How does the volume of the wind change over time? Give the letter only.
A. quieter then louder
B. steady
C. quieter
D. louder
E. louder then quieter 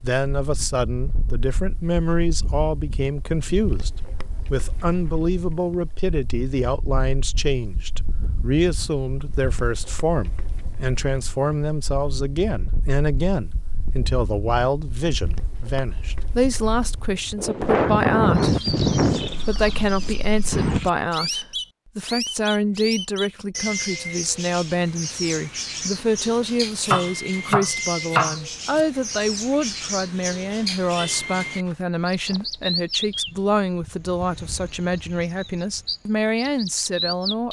D.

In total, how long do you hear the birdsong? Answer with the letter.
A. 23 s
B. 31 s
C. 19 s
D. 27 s
C.